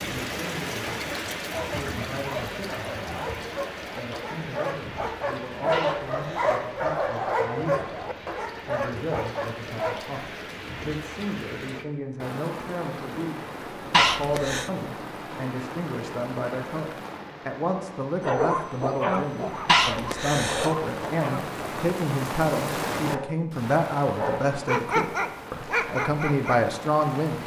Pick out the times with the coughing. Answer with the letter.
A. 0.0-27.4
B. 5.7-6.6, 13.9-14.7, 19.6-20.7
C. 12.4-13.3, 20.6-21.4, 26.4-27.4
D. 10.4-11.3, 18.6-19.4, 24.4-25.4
B.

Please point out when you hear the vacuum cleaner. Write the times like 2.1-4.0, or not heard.
not heard.